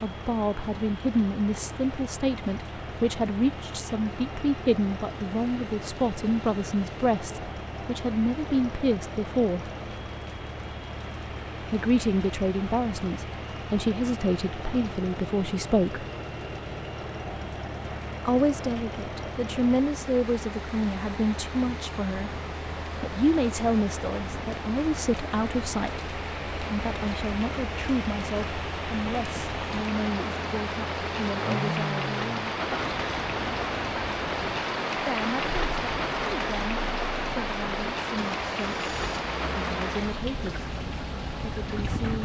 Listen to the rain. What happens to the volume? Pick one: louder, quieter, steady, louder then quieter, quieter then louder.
louder.